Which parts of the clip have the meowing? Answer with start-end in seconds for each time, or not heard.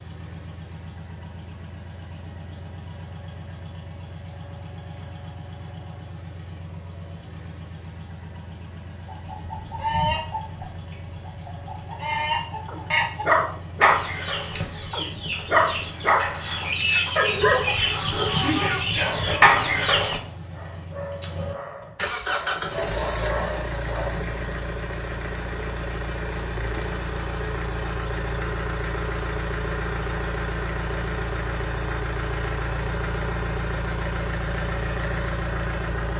not heard.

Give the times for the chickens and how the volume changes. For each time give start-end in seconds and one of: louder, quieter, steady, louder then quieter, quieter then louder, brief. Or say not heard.
9.1-20.2 louder.